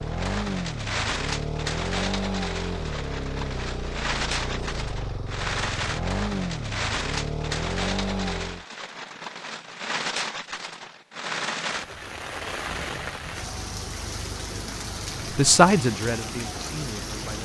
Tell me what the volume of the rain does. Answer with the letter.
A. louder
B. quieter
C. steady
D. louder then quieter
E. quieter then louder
C.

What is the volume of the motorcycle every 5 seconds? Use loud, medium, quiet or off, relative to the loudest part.
loud, loud, off, off.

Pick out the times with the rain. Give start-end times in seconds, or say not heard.
0.0-17.4.